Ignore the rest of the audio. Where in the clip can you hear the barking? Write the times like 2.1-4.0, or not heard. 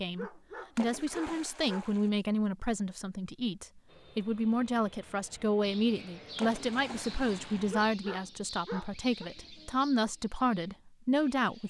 0.1-1.9, 7.7-9.2.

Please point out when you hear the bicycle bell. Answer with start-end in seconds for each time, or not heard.
not heard.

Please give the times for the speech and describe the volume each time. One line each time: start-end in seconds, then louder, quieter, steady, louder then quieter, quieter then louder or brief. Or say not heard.
0.0-11.6 steady.